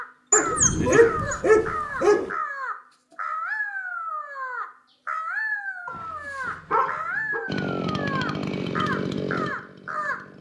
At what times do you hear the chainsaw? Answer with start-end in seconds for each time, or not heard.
7.5-10.3.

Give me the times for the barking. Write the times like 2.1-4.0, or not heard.
0.3-2.2, 5.8-7.4.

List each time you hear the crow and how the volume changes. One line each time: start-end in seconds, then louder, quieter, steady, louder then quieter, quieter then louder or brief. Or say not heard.
0.0-10.2 steady.